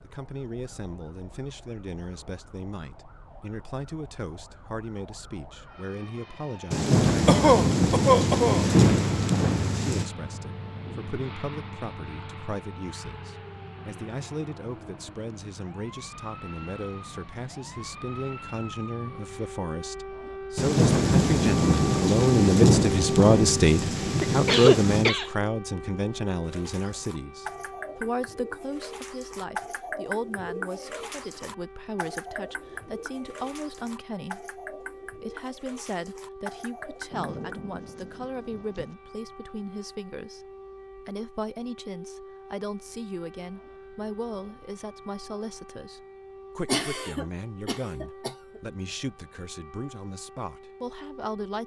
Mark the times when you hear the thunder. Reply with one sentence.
You can hear the thunder from 6.7 to 10.1 s, from 20.6 to 25.1 s and from 37.1 to 39.0 s.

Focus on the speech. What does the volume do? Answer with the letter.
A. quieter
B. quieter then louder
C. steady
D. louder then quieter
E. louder
D.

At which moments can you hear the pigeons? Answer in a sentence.
The pigeons can be heard from 26.4 to 37.6 s.